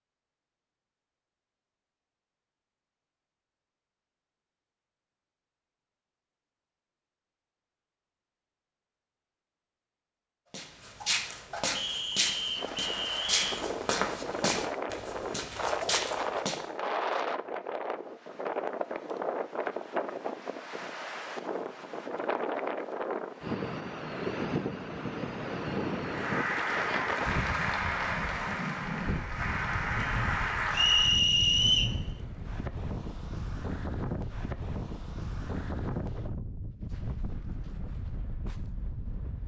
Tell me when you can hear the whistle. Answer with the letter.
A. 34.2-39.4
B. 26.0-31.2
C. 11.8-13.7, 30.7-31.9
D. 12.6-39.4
C.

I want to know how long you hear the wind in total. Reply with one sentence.
The wind can be heard for 27 seconds in total.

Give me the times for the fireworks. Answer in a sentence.
You can't hear the fireworks here.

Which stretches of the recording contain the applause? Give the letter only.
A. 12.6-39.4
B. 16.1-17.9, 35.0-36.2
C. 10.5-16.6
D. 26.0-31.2
D.